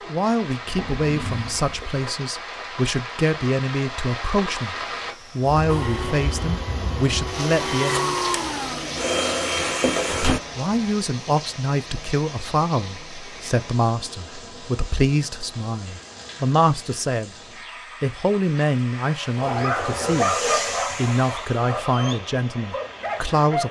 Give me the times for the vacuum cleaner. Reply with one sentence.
You can hear the vacuum cleaner from 5.7 to 10.4 s and from 18.6 to 23.6 s.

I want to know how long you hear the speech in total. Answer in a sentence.
You can hear the speech for 20 seconds altogether.